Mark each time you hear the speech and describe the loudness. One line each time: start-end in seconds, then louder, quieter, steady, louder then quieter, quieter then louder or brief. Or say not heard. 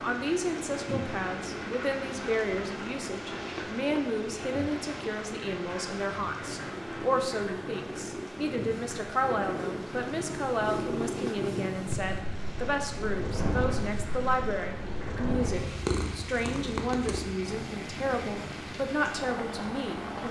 0.0-20.2 steady.